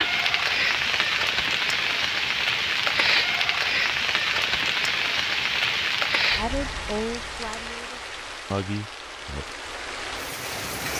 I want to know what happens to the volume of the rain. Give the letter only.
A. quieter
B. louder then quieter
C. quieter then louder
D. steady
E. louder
A.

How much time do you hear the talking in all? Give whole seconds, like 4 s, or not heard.
3 s.